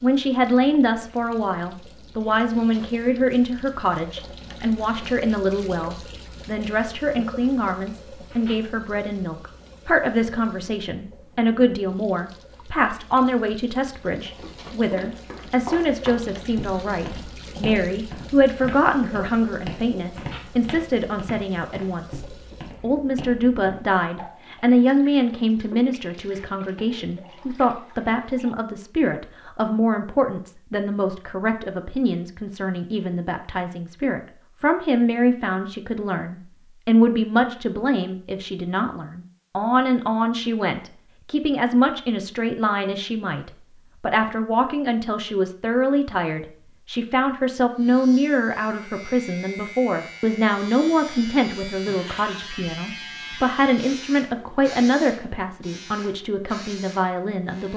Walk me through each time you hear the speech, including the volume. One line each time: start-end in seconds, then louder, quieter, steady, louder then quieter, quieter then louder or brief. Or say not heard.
0.0-57.7 steady.